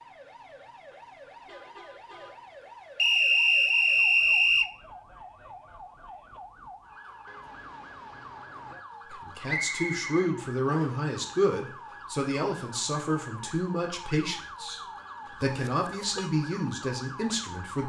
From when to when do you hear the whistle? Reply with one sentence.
The whistle can be heard from 3.0 to 4.7 s and from 9.4 to 10.9 s.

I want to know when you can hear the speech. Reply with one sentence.
You can hear the speech from 9.1 to 17.8 s.